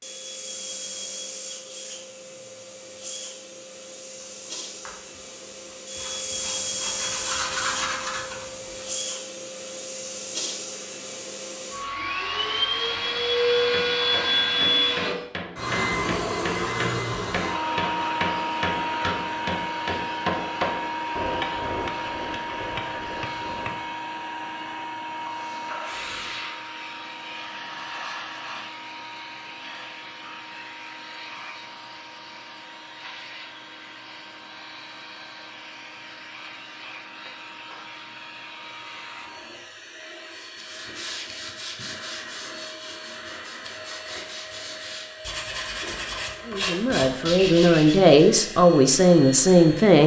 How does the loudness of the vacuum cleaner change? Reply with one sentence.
The loudness of the vacuum cleaner goes up, then down.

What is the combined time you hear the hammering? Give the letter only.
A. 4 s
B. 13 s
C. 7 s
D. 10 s
D.